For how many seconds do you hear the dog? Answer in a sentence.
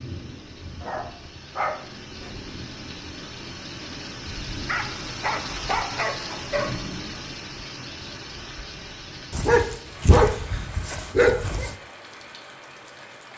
The dog can be heard for 6 seconds in total.